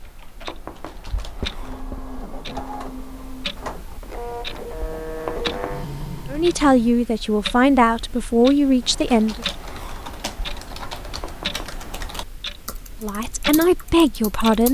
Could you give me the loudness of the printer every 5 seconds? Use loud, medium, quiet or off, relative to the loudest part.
loud, loud, off.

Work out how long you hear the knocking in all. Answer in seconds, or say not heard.
2 s.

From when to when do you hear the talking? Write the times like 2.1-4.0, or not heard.
6.3-9.4, 13.0-14.6.